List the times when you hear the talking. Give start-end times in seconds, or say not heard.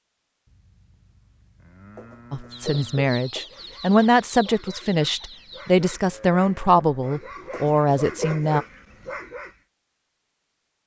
2.3-8.7.